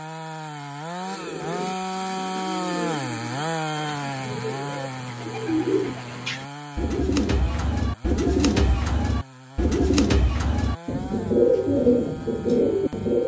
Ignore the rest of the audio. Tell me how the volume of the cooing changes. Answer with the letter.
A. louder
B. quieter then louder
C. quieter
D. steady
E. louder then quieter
A.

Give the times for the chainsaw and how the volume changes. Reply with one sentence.
You can hear the chainsaw from 0.0 to 13.2 s, getting quieter.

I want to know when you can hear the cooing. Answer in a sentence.
The cooing can be heard from 1.0 to 13.2 s.